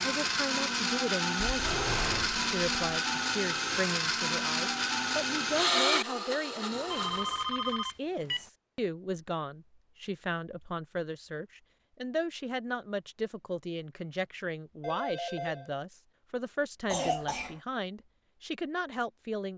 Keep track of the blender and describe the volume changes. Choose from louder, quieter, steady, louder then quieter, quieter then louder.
steady.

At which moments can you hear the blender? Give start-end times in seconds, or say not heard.
0.0-7.5.